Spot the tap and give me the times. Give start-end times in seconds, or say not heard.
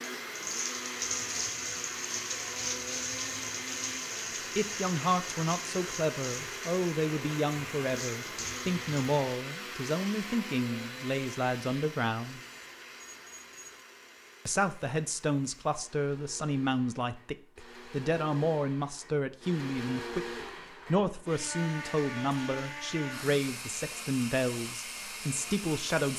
0.0-9.1.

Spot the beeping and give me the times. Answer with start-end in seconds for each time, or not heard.
12.4-13.8.